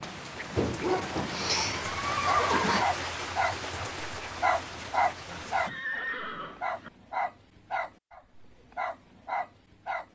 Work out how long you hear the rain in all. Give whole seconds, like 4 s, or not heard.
6 s.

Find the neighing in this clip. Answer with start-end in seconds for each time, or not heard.
0.6-2.9, 5.3-6.9.